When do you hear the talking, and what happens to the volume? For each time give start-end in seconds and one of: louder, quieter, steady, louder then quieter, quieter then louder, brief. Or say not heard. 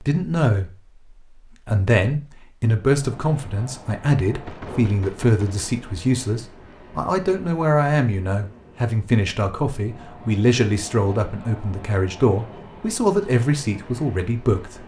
0.0-0.7 brief
1.6-14.8 steady.